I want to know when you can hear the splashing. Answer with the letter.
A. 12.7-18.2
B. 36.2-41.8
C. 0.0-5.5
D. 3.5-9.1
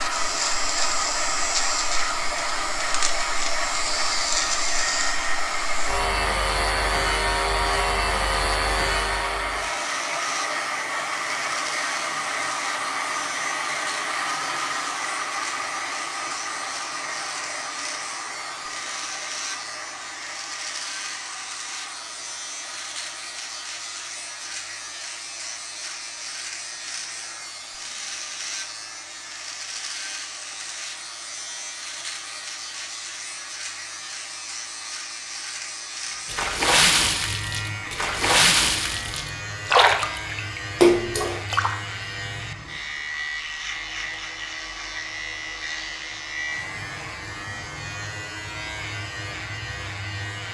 B.